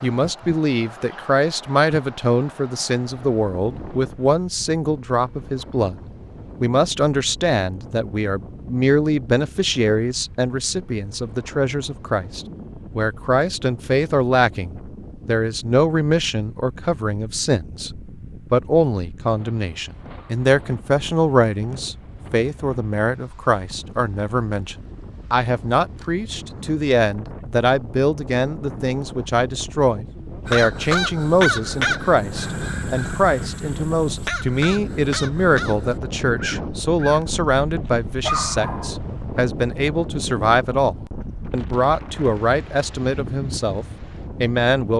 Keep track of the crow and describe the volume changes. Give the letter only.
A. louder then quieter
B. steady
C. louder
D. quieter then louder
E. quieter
E.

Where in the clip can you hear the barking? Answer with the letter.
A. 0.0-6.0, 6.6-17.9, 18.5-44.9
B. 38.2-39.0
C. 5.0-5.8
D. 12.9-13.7
B.